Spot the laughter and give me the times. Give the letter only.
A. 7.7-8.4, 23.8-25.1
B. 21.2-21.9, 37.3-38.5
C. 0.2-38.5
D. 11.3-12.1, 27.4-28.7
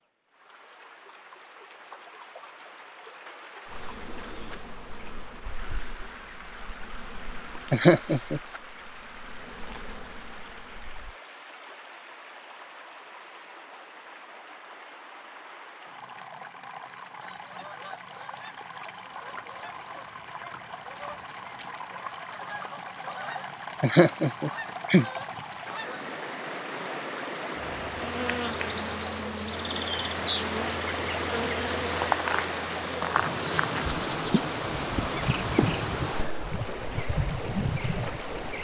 A.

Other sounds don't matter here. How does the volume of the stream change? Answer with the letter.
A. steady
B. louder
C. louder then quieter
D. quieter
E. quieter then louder
B.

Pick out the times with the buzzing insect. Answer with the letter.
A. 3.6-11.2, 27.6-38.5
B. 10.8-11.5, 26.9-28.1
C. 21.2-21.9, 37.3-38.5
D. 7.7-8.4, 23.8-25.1
A.